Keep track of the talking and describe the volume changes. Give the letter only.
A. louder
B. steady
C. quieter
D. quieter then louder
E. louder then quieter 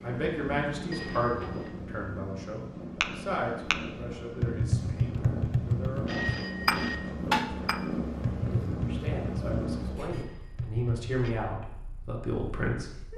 D.